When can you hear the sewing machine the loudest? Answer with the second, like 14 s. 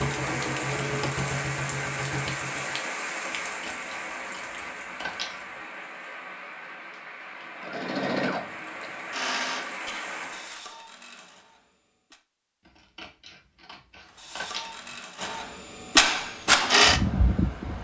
16 s.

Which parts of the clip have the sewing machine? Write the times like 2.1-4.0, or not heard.
0.0-2.8, 7.5-12.2, 14.1-17.7.